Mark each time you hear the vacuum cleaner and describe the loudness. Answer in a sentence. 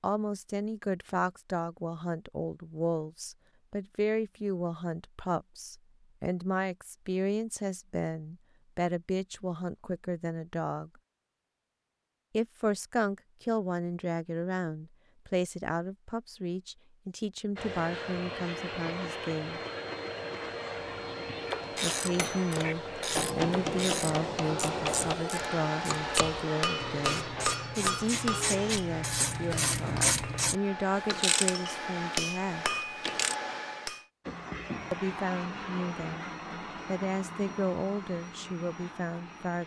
The vacuum cleaner can be heard from 17.6 to 28.8 s, at a steady volume; and from 34.2 to 39.6 s, getting quieter.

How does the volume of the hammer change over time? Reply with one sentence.
The loudness of the hammer goes down, then up.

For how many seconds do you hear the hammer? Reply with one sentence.
The hammer can be heard for 12 seconds in total.